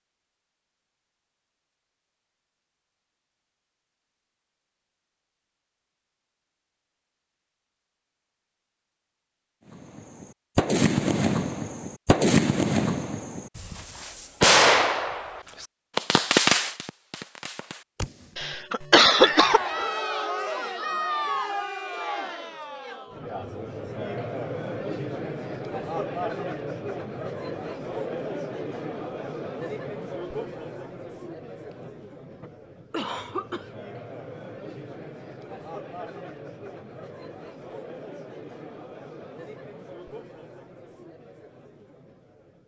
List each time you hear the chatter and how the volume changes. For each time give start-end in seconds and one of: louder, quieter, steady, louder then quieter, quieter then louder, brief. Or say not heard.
19.1-42.6 quieter.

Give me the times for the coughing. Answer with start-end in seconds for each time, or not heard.
18.4-19.6, 31.6-33.8.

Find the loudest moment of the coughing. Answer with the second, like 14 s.
19 s.